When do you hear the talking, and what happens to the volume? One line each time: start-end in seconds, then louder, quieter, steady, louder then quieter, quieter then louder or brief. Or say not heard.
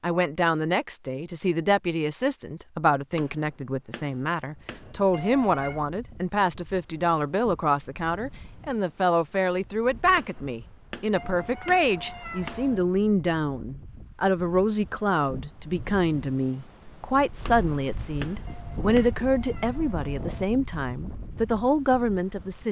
0.0-22.6 steady.